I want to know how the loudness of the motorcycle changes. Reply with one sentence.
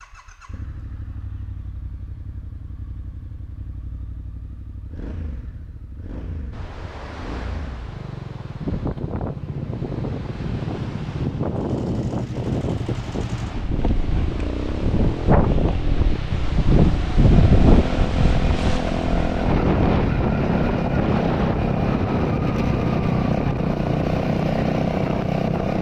The volume of the motorcycle goes up.